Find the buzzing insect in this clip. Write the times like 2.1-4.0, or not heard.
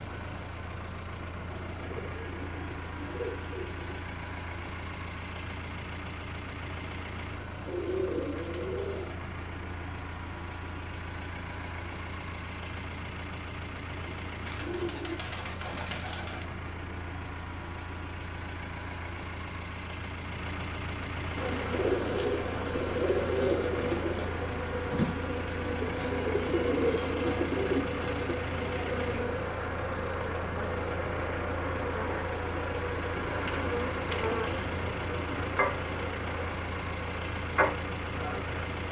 21.4-38.8.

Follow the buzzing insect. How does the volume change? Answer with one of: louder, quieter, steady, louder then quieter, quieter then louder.
steady.